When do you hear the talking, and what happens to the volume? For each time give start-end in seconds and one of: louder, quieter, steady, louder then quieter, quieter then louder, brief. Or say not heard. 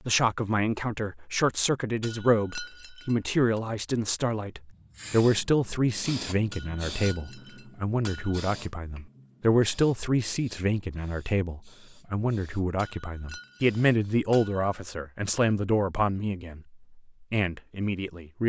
0.1-18.4 steady.